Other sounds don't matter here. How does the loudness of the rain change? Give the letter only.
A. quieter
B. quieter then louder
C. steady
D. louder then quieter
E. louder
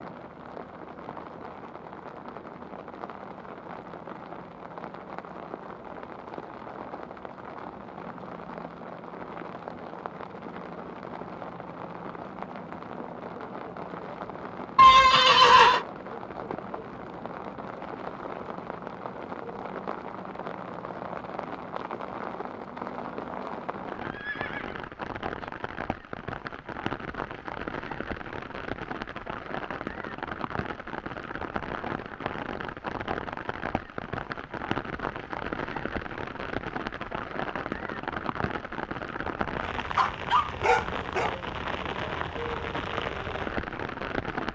E.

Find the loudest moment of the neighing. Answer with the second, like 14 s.
15 s.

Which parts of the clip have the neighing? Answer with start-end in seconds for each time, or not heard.
14.8-15.8, 24.0-25.5.